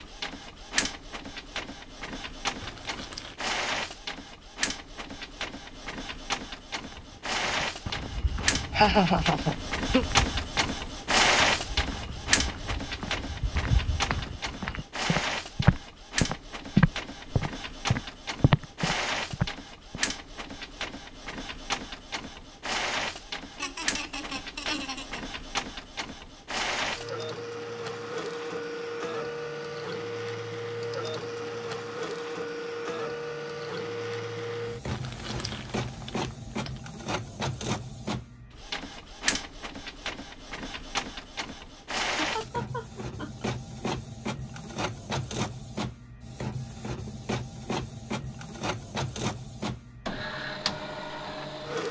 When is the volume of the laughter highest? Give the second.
9 s.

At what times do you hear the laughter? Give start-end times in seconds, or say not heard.
8.7-10.1, 23.6-25.2, 42.1-43.5.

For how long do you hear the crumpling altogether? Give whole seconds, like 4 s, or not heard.
3 s.